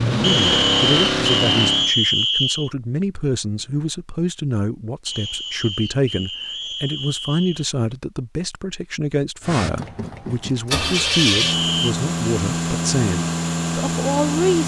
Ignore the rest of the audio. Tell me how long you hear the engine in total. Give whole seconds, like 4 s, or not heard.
7 s.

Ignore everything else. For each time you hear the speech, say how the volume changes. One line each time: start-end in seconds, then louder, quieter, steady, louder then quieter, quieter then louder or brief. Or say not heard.
0.1-14.6 steady.